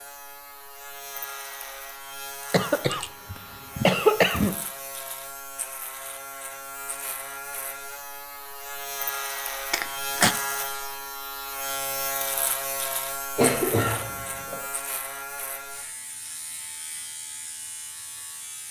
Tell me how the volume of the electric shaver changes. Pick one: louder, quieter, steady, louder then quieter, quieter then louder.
louder then quieter.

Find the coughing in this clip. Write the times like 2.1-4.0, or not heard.
2.5-4.5, 9.7-10.3, 13.3-14.7.